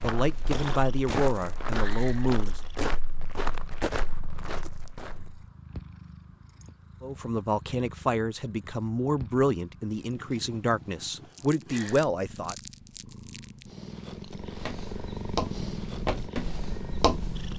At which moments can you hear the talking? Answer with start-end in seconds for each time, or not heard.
0.0-2.6, 7.0-12.6.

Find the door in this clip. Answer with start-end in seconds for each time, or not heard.
not heard.